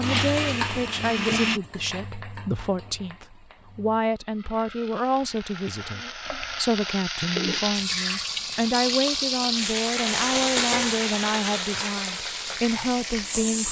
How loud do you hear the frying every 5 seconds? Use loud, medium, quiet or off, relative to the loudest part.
medium, loud, loud.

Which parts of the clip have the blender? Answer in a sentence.
The blender can be heard from 0.0 to 1.6 s.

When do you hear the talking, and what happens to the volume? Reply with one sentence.
You can hear the talking from 0.0 to 13.6 s, at a steady volume.